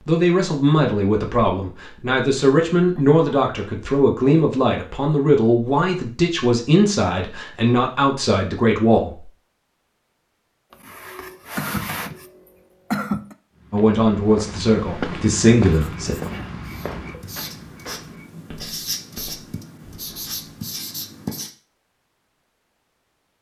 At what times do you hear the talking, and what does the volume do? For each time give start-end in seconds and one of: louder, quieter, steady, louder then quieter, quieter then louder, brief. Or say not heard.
0.0-9.2 steady
13.7-16.1 brief.